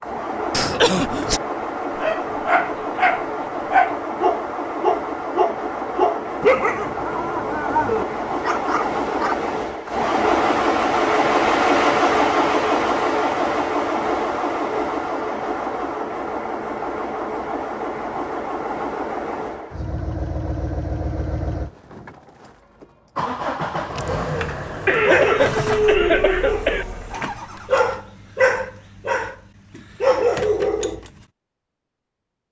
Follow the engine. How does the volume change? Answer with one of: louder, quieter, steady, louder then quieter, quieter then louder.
louder then quieter.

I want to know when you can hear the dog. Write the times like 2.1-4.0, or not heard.
1.9-9.4, 23.6-31.1.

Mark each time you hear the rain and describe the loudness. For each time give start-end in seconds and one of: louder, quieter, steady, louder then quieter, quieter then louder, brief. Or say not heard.
not heard.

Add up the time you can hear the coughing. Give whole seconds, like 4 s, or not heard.
3 s.